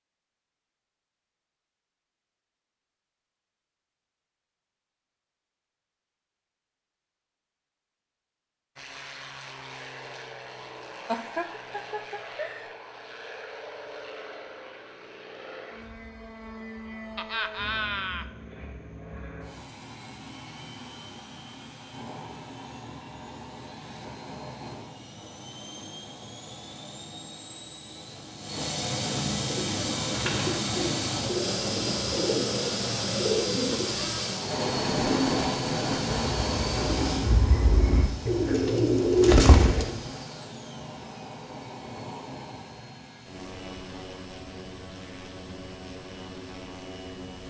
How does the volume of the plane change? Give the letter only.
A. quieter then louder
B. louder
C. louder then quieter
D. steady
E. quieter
C.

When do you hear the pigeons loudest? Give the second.
39 s.